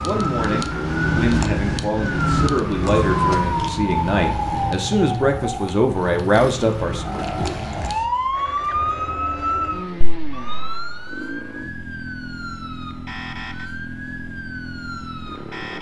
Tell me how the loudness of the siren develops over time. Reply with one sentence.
The loudness of the siren goes down.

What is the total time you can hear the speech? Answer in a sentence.
You can hear the speech for 7 seconds altogether.